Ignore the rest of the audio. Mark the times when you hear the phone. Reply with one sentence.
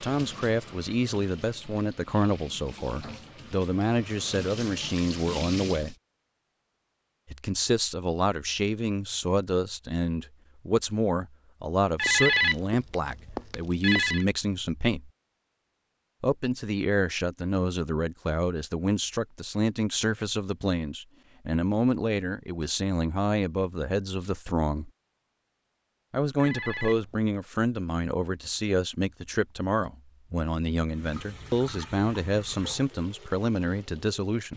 You can hear the phone from 11.9 to 14.2 s and from 26.4 to 27.4 s.